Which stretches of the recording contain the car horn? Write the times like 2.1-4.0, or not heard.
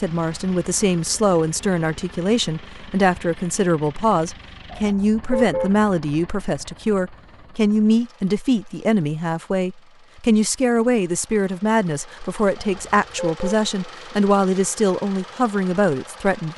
4.7-5.8, 12.6-13.4.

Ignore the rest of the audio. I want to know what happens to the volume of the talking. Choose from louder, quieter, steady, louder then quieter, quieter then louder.
steady.